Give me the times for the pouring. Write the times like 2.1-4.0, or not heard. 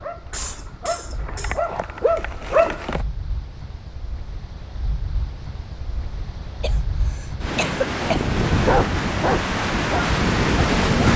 not heard.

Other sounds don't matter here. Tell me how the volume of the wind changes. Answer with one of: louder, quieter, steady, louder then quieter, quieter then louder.
louder.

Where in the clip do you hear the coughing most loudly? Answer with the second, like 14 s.
8 s.